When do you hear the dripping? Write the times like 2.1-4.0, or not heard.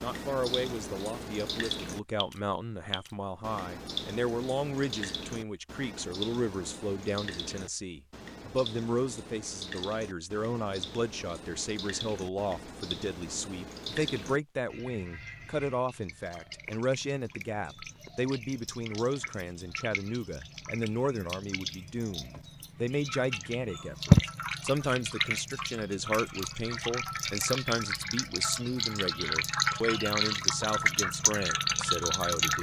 0.0-32.5.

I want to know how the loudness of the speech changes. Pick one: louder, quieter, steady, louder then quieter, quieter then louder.
steady.